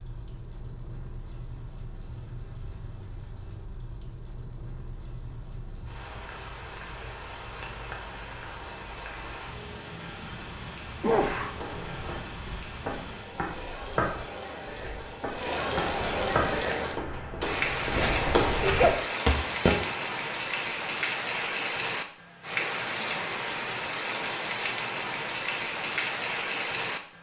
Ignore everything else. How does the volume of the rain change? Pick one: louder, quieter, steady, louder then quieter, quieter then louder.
louder.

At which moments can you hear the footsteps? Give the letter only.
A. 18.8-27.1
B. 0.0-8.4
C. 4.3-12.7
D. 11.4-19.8
D.